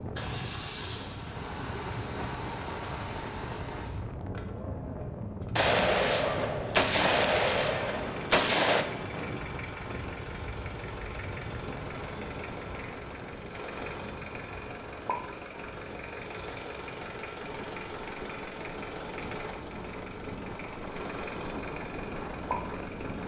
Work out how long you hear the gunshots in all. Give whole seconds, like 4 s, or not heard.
3 s.